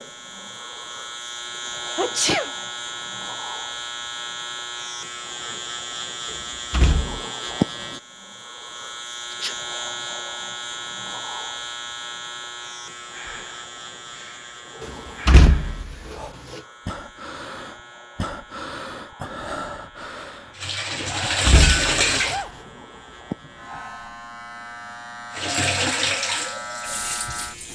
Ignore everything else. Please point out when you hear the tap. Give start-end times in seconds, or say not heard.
20.6-22.4, 25.3-27.7.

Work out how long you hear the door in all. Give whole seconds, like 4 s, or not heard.
3 s.